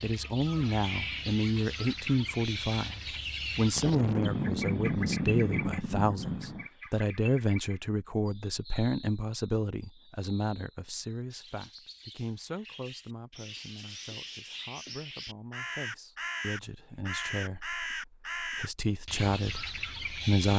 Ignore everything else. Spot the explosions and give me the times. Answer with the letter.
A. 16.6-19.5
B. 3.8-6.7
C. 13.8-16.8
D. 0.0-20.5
B.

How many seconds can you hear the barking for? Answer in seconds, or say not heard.
not heard.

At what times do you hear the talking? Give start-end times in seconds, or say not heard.
0.0-20.5.